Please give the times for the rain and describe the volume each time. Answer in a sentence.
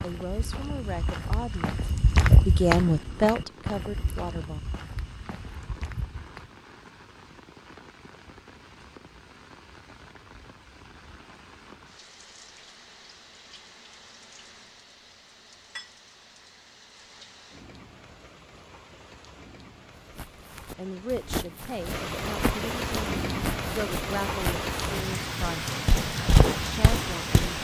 The rain can be heard from 0.0 to 27.5 s, getting louder.